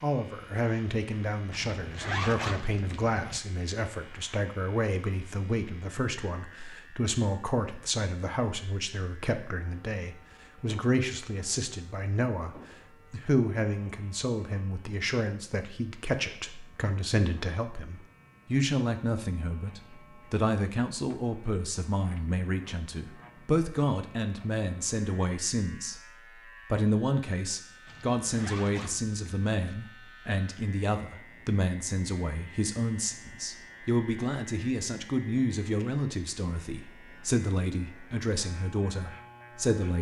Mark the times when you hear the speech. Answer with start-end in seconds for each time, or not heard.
0.0-26.0, 26.7-39.9.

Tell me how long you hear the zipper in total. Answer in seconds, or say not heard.
4 s.